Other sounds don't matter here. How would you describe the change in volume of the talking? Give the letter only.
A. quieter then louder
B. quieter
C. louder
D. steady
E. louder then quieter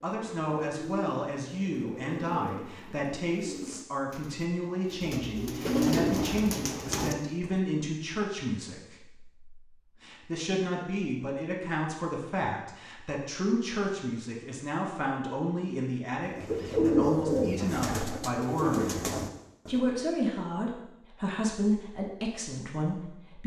D.